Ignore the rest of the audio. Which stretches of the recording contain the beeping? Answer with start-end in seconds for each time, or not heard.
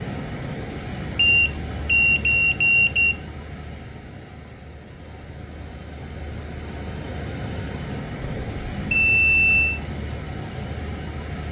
1.1-3.1, 8.2-9.8.